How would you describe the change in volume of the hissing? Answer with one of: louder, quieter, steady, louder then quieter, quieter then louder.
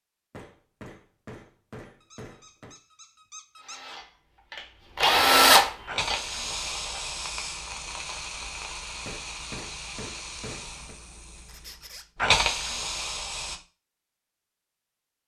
quieter then louder.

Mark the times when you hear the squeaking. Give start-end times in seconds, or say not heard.
2.0-4.0, 11.4-12.1.